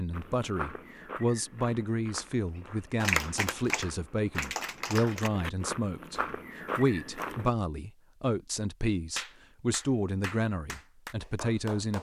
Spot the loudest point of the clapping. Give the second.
3 s.